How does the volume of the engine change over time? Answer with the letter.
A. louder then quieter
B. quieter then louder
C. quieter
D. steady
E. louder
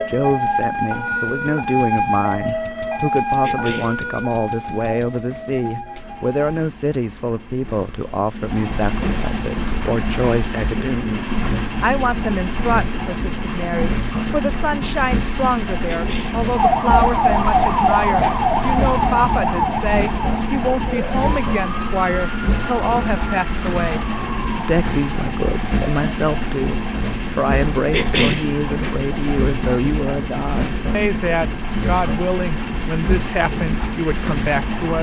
E.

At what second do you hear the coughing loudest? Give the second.
28 s.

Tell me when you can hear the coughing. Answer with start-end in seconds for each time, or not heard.
3.4-4.0, 15.8-16.4, 27.9-28.4.